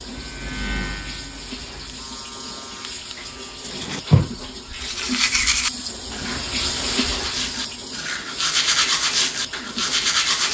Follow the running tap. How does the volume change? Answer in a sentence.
The loudness of the running tap goes up, then down.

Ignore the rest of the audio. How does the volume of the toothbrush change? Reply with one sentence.
The loudness of the toothbrush goes down, then up.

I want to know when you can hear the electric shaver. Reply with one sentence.
You can hear the electric shaver from 0.0 to 3.6 s.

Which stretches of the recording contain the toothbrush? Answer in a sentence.
The toothbrush can be heard from 3.6 to 10.4 s.